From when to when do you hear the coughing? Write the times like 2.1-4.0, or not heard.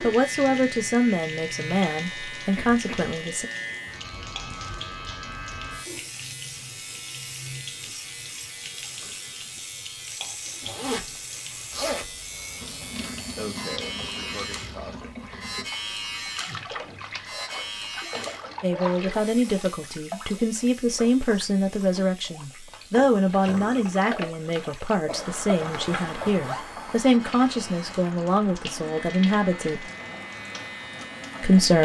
2.4-3.1, 13.3-15.6, 25.1-25.9.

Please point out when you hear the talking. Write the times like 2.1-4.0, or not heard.
0.0-3.5, 18.6-29.8, 31.4-31.8.